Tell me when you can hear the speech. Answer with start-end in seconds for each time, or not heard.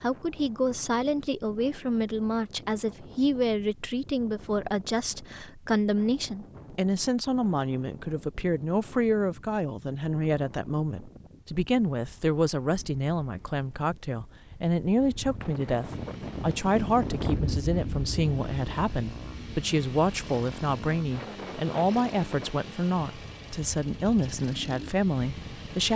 0.0-25.9.